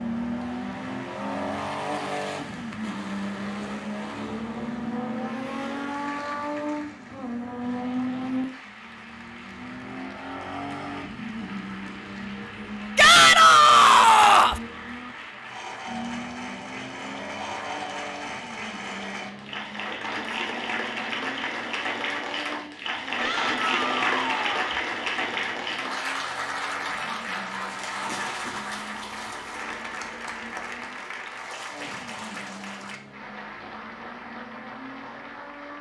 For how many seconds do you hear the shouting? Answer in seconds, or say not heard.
3 s.